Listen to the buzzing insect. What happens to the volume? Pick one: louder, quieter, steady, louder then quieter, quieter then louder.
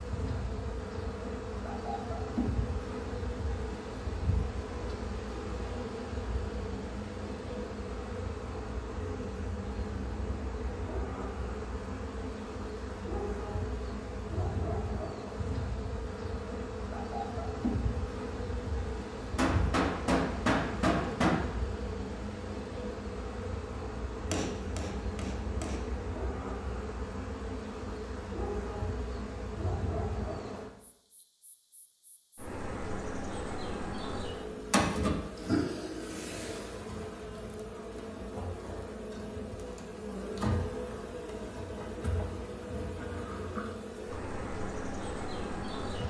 steady.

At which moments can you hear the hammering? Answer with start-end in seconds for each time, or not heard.
19.4-21.4, 24.3-25.8.